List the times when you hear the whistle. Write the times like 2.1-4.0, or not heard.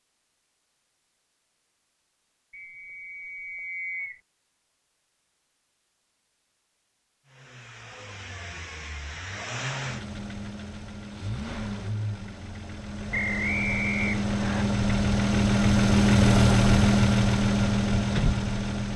2.5-4.2, 13.1-14.7.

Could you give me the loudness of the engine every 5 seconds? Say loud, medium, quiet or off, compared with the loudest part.
off, quiet, medium, loud.